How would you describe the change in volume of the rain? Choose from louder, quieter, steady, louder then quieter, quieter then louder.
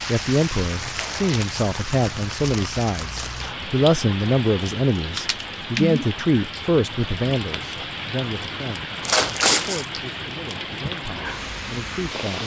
steady.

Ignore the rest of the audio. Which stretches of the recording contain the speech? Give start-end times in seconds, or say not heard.
0.1-12.4.